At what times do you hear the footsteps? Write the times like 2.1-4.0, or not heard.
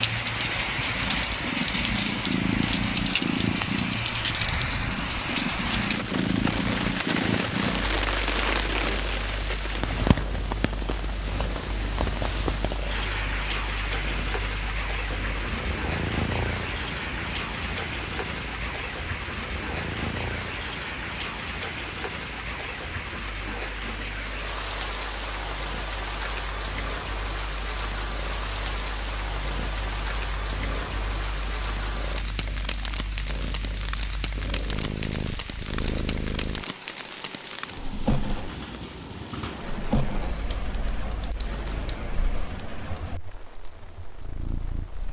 not heard.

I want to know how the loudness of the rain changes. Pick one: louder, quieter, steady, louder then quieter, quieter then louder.
quieter.